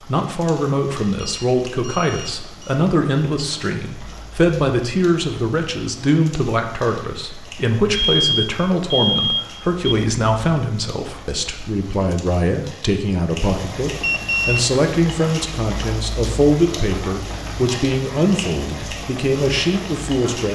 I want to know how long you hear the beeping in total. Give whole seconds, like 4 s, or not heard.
4 s.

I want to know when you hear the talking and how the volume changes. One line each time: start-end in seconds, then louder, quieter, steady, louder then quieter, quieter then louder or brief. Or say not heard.
0.0-20.5 steady.